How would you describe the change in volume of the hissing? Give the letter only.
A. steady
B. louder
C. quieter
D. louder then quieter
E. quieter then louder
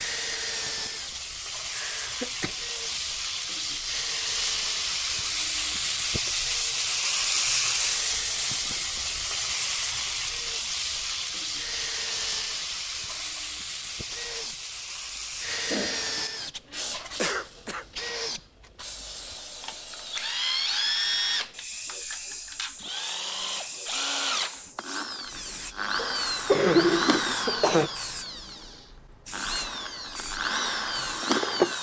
C.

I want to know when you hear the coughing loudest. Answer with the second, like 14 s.
27 s.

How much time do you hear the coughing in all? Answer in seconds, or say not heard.
4 s.